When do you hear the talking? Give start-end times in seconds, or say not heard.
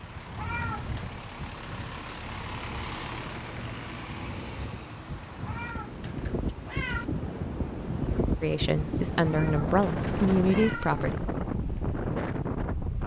8.4-11.2.